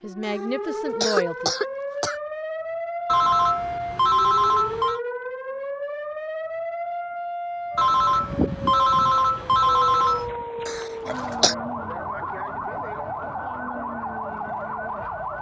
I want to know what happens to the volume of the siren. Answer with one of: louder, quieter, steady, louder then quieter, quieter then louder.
steady.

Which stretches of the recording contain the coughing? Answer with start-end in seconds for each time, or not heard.
0.2-2.1, 10.7-11.6.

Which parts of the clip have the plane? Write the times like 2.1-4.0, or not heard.
not heard.